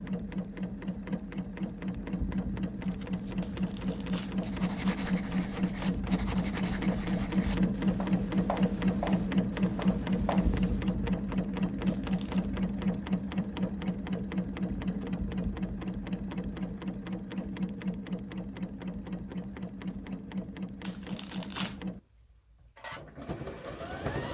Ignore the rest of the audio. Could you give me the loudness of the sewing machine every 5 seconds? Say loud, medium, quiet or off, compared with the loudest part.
medium, loud, loud, medium, medium.